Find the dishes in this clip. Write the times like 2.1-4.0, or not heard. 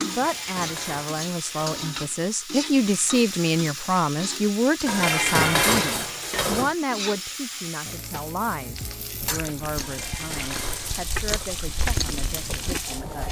0.1-2.1, 4.8-6.8, 9.8-11.4.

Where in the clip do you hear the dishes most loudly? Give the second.
6 s.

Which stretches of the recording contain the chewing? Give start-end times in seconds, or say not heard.
9.2-13.2.